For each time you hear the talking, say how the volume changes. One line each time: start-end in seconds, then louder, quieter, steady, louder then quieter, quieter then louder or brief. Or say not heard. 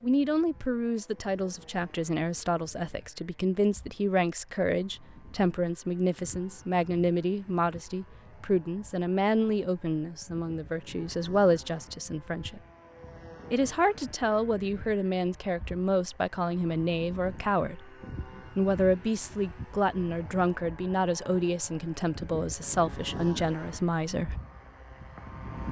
0.0-12.6 steady
13.5-17.9 steady
18.6-24.4 steady.